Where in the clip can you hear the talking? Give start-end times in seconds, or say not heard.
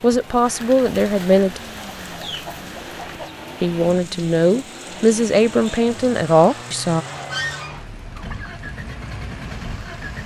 0.0-1.6, 3.6-7.0.